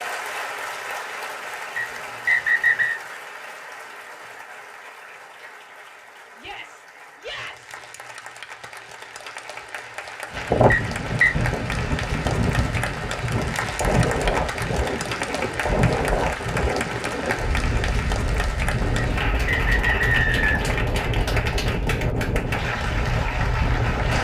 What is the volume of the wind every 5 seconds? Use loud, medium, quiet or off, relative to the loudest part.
off, off, loud, loud, loud.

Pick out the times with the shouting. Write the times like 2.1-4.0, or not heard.
6.3-7.8.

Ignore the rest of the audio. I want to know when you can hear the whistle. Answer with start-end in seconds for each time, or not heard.
1.8-3.0, 10.7-11.3, 18.9-20.7.